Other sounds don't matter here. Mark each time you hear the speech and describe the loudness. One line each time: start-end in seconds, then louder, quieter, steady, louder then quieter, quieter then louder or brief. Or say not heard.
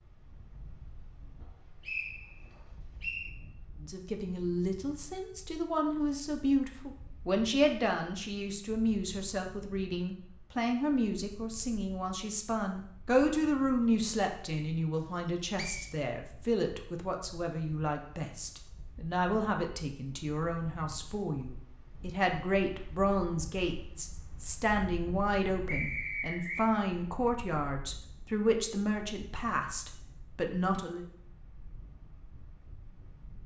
3.8-31.1 steady.